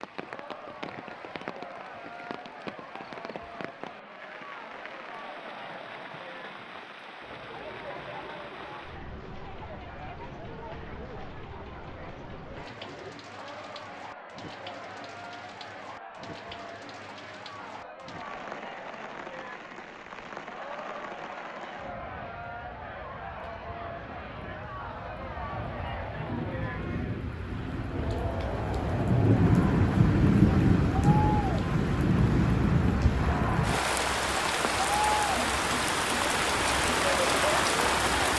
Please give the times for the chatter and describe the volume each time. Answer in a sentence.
The chatter can be heard from 0.0 to 38.3 s, getting louder.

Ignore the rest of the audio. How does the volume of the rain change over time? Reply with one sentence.
The volume of the rain goes up.